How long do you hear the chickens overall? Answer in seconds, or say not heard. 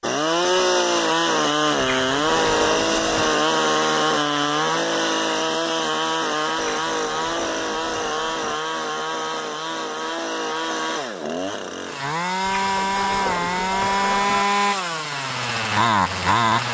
6 s.